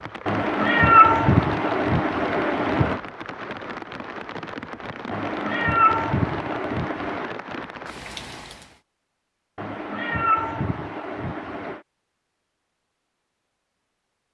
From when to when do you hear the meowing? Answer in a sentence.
You can hear the meowing from 0.2 to 3.0 s, from 5.1 to 7.3 s and from 9.6 to 11.8 s.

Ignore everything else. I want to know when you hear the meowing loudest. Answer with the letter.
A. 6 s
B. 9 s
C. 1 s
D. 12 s
C.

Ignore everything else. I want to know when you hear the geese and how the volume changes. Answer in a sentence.
The geese can't be heard in this clip.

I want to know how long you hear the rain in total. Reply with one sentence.
The rain can be heard for 9 seconds in total.